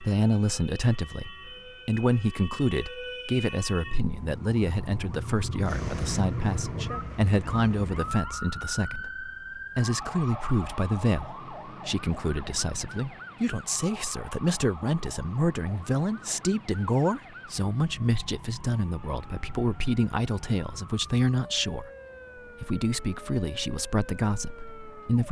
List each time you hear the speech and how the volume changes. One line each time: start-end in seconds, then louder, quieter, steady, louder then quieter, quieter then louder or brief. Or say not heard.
0.0-21.9 steady
22.6-25.2 brief.